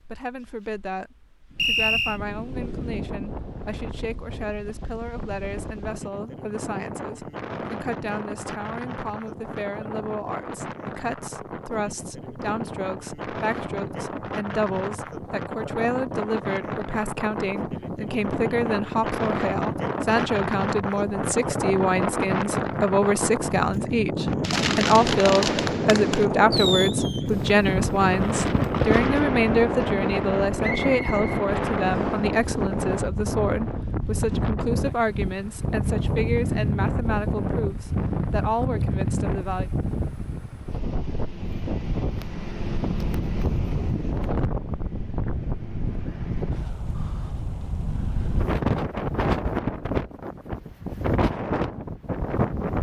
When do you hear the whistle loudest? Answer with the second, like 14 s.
2 s.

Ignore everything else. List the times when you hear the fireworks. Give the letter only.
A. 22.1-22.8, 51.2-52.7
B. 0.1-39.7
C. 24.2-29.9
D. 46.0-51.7
C.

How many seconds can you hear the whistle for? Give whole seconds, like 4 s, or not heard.
2 s.